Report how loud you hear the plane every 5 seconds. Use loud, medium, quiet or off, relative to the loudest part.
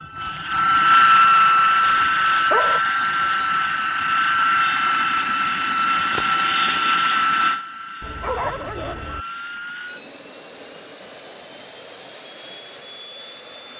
loud, medium, quiet.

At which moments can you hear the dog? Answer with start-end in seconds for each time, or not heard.
1.5-2.8, 8.0-9.2.